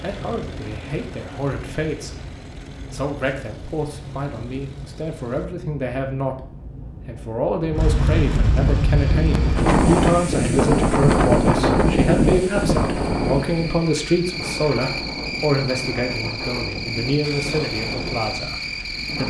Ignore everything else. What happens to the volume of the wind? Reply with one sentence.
The volume of the wind goes up, then down.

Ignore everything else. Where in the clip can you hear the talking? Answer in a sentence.
You can hear the talking from 0.0 to 2.2 s and from 2.9 to 19.2 s.